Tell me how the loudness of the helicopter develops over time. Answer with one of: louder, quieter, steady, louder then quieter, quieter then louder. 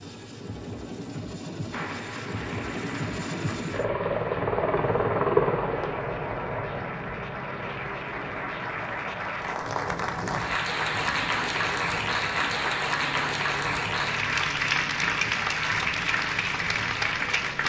louder then quieter.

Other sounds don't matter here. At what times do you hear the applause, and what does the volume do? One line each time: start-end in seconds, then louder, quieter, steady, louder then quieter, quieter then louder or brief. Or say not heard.
1.7-17.6 louder.